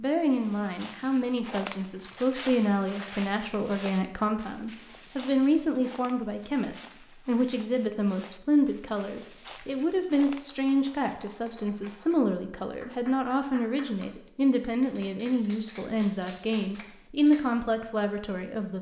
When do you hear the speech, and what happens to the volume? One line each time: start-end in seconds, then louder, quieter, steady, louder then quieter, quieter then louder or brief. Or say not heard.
0.0-18.7 steady.